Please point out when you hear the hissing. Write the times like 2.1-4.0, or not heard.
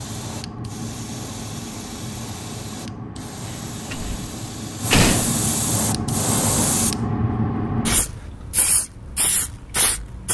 0.0-10.2.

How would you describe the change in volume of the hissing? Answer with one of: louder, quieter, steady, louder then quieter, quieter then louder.
louder then quieter.